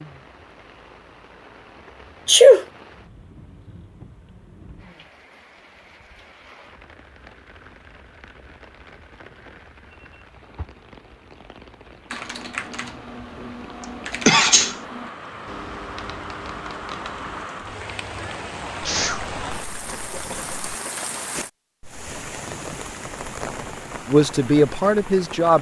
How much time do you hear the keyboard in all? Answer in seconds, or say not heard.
6 s.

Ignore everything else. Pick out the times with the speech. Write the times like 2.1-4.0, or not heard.
24.1-25.5.